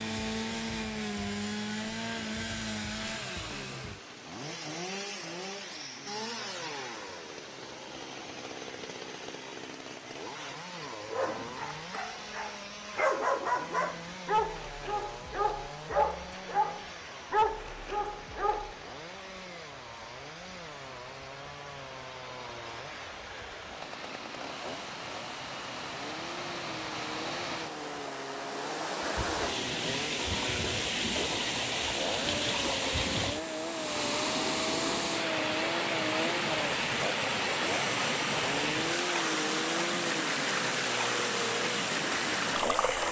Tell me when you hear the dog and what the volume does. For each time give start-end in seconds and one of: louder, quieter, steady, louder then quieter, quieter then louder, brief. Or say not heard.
11.1-18.8 louder.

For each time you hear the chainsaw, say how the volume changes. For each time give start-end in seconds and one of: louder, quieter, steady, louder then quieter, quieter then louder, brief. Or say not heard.
0.0-43.0 quieter then louder.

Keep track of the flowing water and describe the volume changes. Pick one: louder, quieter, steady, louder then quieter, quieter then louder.
louder.